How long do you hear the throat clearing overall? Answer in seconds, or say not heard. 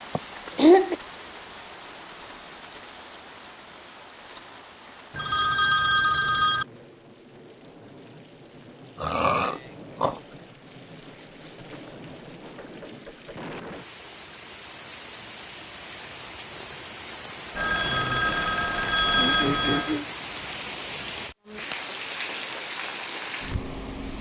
3 s.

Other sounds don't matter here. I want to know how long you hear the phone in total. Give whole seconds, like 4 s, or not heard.
4 s.